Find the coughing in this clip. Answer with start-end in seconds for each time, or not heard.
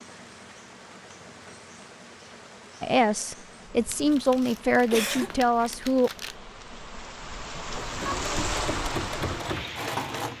4.9-5.8.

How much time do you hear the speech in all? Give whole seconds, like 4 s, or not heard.
3 s.